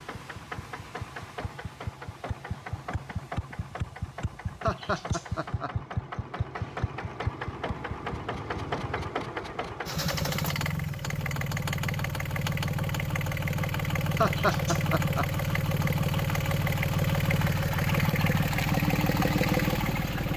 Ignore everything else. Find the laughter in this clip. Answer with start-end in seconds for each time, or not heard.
4.6-5.7, 14.2-15.2.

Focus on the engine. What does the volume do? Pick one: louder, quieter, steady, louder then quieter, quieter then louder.
louder.